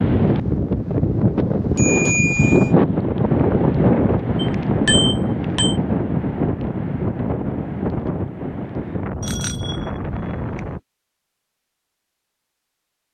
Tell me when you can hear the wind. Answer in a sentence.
The wind can be heard from 0.0 to 10.8 s.